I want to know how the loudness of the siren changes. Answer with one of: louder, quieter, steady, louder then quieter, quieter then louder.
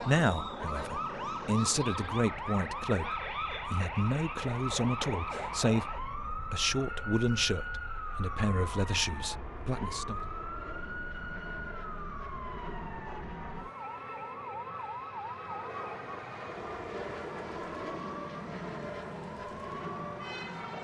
quieter.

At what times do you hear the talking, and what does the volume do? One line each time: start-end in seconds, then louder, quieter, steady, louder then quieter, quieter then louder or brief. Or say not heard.
0.0-10.2 steady.